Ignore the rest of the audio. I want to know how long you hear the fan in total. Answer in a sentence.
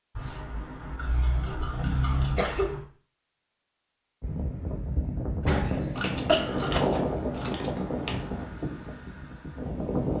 You can hear the fan for 6 seconds altogether.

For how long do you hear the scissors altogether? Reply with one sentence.
You can hear the scissors for 5 seconds altogether.